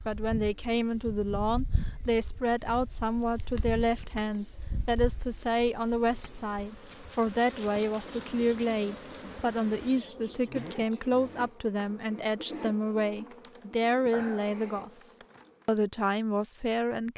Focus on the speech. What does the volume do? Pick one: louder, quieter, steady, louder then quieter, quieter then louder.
steady.